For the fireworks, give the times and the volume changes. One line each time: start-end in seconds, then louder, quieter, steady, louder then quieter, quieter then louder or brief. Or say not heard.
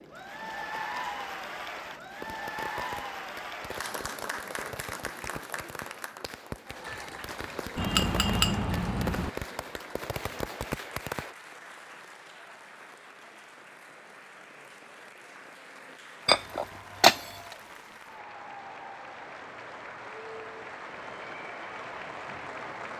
2.1-11.3 louder.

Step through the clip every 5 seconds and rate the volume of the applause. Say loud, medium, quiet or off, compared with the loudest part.
loud, medium, medium, medium, loud.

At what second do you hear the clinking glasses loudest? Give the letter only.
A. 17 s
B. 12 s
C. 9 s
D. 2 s
A.